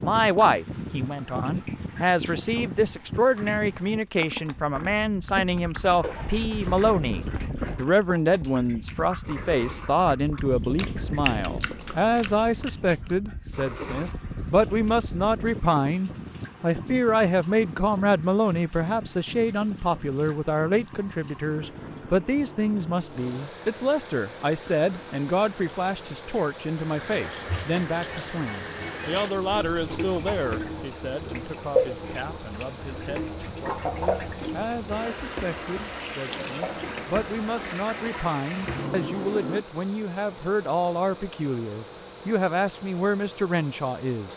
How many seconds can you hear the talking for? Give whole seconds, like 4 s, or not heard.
44 s.